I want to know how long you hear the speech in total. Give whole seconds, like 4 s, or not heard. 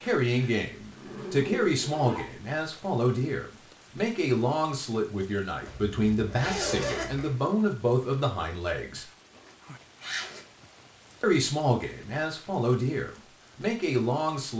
12 s.